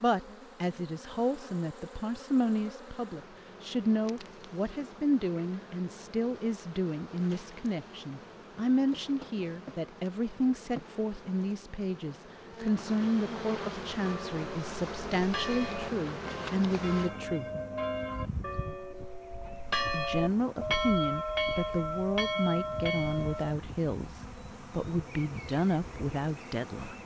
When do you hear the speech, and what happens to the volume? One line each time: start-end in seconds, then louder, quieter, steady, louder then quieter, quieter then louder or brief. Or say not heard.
0.0-17.4 steady
19.9-26.9 steady.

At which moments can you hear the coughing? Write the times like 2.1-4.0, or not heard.
not heard.